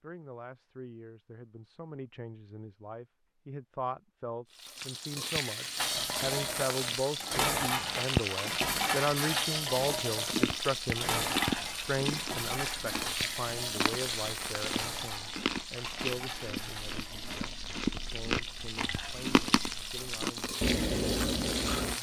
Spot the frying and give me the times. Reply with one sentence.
You can hear the frying from 4.5 to 21.9 s.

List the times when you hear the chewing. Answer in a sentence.
The chewing can be heard from 10.3 to 21.9 s.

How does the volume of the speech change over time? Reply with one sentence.
The volume of the speech goes up, then down.